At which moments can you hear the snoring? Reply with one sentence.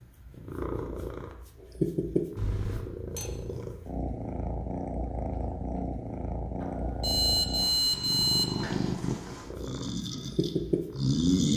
You can hear the snoring from 9.6 to 11.5 s.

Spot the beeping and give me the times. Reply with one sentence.
You can hear the beeping from 2.4 to 3.3 s and from 6.6 to 8.7 s.